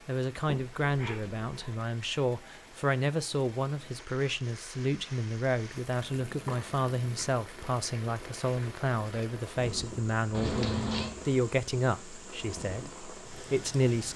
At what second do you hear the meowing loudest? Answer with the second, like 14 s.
11 s.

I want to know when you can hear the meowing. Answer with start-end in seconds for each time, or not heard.
0.5-1.9, 6.2-7.3, 10.3-11.2.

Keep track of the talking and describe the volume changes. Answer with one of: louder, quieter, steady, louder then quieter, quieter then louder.
steady.